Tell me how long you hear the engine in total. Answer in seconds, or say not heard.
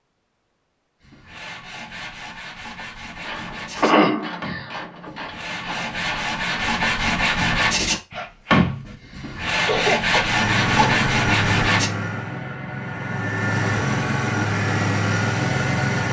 6 s.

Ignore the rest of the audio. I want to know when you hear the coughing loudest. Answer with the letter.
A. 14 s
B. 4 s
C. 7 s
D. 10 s
B.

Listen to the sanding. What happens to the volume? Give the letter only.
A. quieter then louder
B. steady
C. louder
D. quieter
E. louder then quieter
C.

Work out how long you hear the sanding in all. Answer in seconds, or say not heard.
11 s.